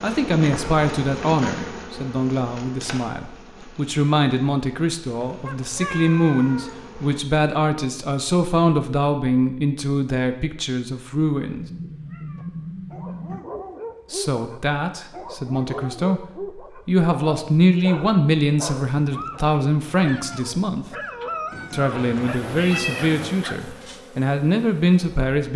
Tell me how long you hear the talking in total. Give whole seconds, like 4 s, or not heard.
22 s.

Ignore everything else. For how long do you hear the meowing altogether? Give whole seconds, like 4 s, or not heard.
5 s.